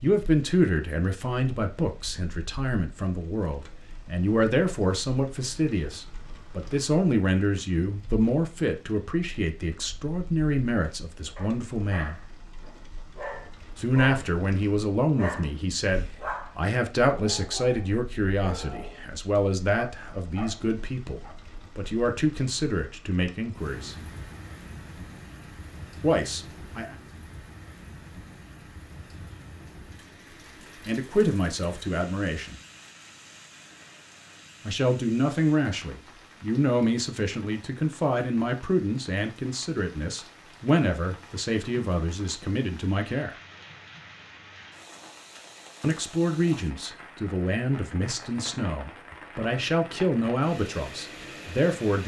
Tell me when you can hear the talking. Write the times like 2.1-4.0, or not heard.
0.0-12.2, 13.8-23.9, 26.0-26.9, 30.9-32.5, 34.6-43.4, 45.8-52.0.